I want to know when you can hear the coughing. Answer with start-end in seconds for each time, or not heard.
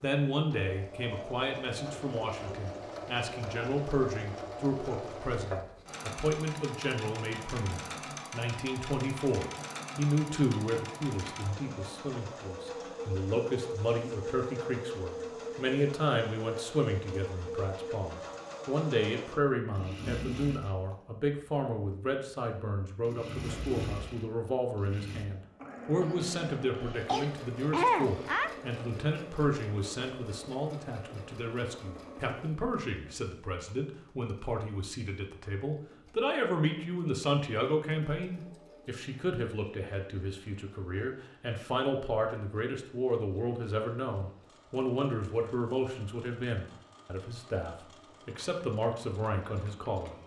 26.0-28.6.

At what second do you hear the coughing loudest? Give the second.
28 s.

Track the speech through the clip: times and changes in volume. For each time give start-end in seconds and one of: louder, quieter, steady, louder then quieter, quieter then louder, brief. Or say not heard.
0.0-50.1 steady.